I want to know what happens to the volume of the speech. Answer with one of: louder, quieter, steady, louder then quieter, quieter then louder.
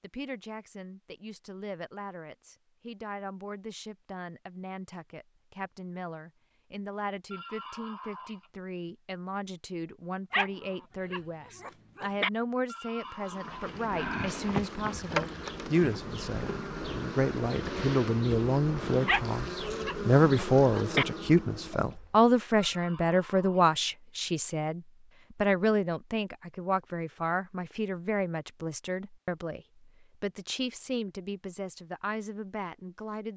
louder then quieter.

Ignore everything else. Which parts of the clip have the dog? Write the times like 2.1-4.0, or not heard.
10.3-12.3, 19.1-21.1.